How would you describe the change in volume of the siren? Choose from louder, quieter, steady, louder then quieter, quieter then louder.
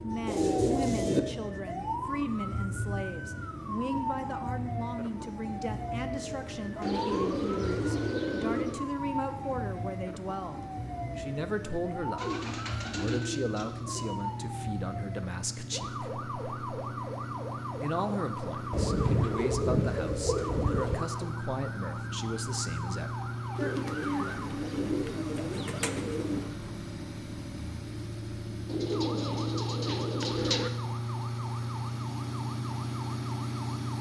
quieter.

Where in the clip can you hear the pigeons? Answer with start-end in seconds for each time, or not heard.
0.2-1.2, 6.8-8.8, 12.2-14.2, 18.7-21.1, 23.6-26.5, 28.6-30.7.